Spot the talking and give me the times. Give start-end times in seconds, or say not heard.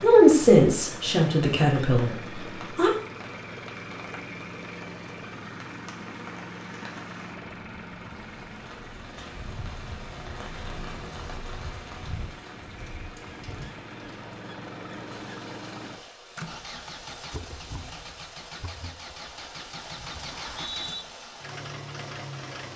0.0-2.9.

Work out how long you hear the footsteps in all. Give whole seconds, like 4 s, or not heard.
not heard.